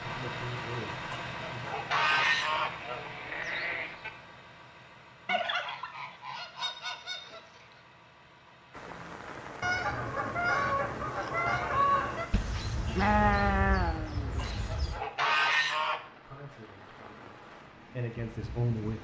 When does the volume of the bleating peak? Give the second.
13 s.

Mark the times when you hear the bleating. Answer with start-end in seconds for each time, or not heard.
2.1-4.1, 12.3-15.0.